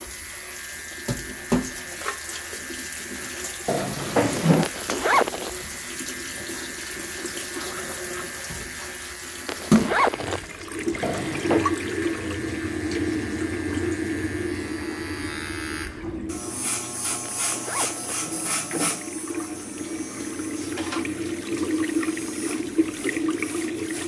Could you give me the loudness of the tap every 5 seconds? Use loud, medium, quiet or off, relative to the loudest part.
medium, loud, loud, medium, loud.